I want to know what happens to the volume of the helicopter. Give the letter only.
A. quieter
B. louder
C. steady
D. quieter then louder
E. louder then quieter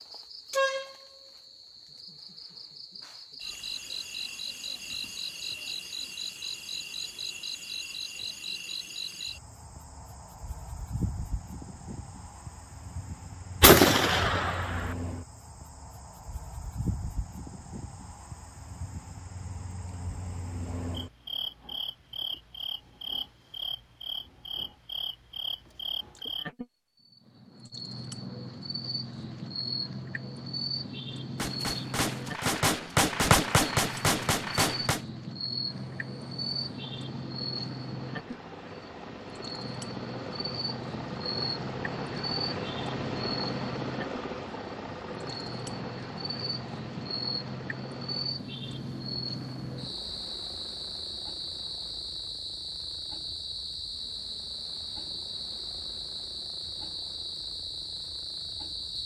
E.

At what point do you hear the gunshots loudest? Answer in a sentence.
The volume of the gunshots peaks at 14 seconds.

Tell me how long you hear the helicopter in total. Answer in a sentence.
The helicopter can be heard for 23 seconds in total.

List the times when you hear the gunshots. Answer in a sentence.
The gunshots can be heard from 13.6 to 14.9 s and from 31.4 to 35.0 s.